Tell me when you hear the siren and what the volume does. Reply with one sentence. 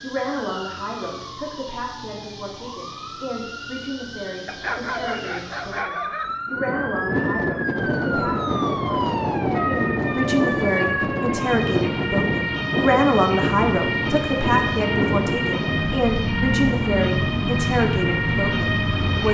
You can hear the siren from 0.0 to 19.2 s, getting louder.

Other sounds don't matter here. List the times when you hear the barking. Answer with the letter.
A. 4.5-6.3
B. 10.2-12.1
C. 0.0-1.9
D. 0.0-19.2
A.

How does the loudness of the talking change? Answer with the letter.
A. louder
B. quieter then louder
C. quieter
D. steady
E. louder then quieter
A.